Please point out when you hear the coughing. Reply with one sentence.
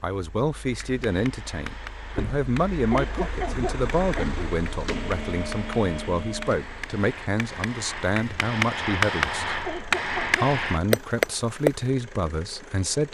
You can hear the coughing from 2.9 to 4.5 s and from 9.7 to 11.1 s.